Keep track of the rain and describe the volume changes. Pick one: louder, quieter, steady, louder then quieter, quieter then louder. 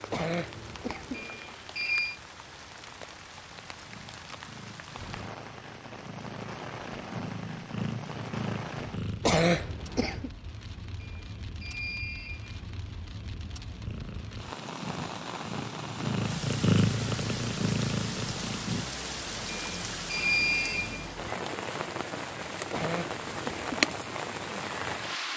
louder.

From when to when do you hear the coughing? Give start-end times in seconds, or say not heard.
0.1-1.2, 9.2-10.3, 22.7-23.7.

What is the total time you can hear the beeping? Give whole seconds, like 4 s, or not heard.
4 s.